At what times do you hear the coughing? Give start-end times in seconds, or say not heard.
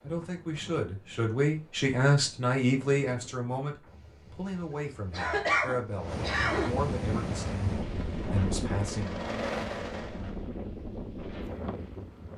5.1-6.7.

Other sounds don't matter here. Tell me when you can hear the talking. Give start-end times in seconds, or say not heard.
0.0-9.2.